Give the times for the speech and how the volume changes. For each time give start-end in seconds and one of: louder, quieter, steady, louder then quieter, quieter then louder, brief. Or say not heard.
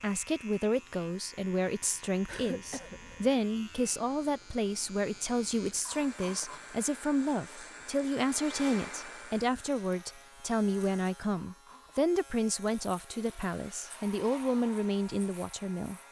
0.0-16.0 steady.